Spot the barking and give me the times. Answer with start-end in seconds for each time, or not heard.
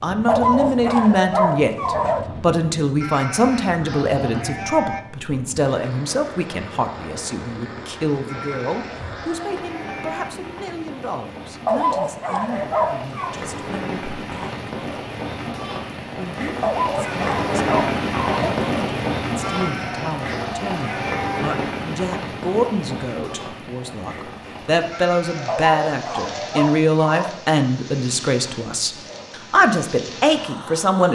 0.2-2.2, 11.7-13.3, 16.6-18.6, 25.4-27.4.